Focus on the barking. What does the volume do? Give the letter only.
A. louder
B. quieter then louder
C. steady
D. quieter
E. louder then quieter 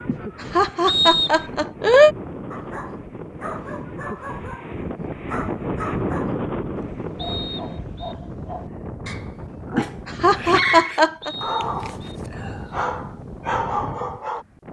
A.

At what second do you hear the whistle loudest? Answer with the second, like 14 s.
1 s.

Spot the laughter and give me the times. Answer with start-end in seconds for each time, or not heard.
0.1-2.1, 9.8-11.3.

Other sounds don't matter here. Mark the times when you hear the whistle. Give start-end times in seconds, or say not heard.
0.8-1.5, 7.2-8.2, 11.2-12.2.